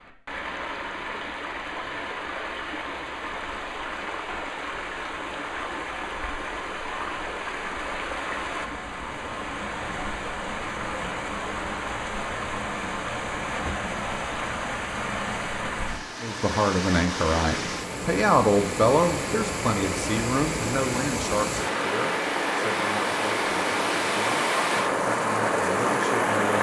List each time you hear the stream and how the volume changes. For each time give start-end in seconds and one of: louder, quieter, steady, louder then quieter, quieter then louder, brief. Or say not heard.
0.0-26.5 louder.